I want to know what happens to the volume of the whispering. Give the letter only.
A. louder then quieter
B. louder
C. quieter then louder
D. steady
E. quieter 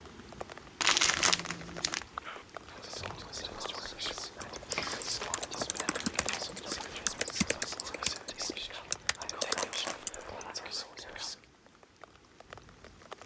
D.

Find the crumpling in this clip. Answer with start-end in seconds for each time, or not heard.
0.8-2.0, 4.7-7.1, 9.4-10.2.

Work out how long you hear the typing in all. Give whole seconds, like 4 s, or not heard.
6 s.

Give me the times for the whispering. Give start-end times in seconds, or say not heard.
2.2-11.4.